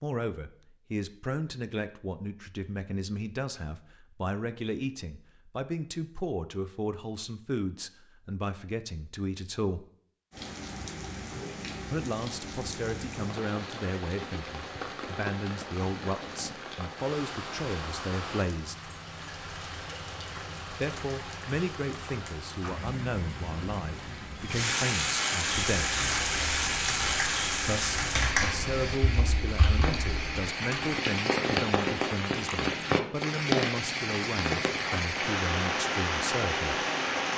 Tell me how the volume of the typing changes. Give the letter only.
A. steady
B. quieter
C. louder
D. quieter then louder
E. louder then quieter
E.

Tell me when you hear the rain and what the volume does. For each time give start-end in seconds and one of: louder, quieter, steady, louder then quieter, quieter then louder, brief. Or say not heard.
10.3-37.3 louder.